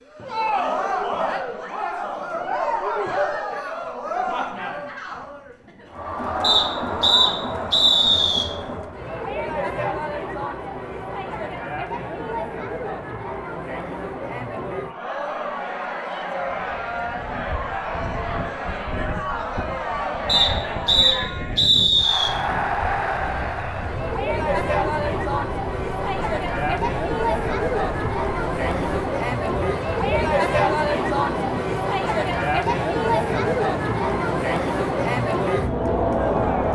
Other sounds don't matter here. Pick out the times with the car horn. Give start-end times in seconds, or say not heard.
not heard.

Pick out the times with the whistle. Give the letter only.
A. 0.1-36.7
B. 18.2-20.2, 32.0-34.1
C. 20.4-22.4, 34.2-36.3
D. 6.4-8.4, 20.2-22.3
D.